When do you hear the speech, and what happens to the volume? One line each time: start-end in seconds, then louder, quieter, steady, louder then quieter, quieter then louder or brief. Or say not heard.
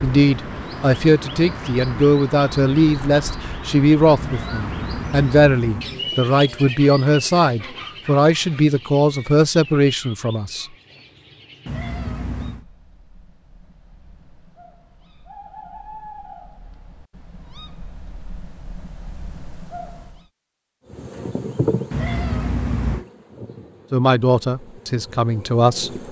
0.0-10.7 steady
23.9-26.0 brief.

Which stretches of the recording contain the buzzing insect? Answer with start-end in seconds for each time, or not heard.
20.9-26.0.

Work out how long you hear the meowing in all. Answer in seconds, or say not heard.
4 s.